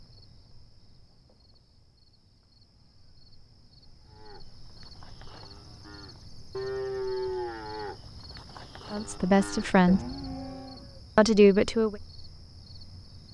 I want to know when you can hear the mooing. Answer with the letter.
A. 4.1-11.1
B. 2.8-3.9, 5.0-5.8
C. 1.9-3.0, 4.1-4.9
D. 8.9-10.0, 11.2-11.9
A.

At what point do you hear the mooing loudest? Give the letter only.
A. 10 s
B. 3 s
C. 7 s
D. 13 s
C.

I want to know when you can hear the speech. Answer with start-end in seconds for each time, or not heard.
8.9-10.0, 11.2-11.9.